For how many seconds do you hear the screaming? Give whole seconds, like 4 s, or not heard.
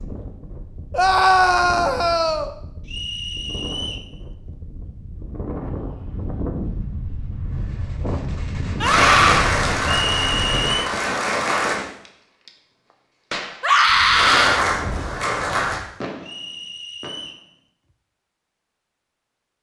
3 s.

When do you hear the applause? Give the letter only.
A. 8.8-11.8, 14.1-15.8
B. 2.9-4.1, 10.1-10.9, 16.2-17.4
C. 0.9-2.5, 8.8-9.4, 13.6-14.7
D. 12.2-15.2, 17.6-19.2
A.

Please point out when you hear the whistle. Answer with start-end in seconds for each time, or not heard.
2.9-4.1, 10.1-10.9, 16.2-17.4.